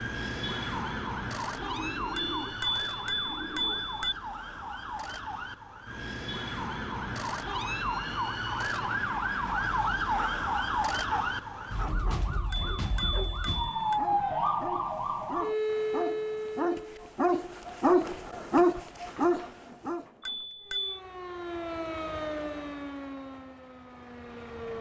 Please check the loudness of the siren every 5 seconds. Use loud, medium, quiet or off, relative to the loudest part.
medium, loud, loud, loud, medium.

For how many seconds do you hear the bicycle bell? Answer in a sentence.
You can hear the bicycle bell for 4 seconds altogether.